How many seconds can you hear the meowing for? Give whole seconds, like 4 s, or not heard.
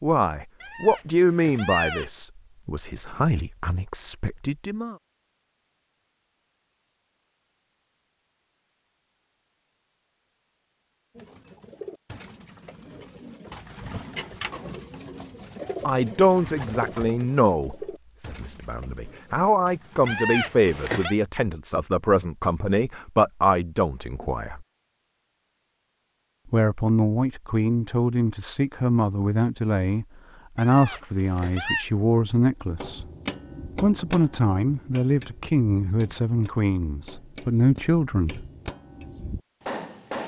4 s.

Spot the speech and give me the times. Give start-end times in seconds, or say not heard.
0.0-5.0, 15.8-24.6, 26.5-33.0, 33.8-38.5.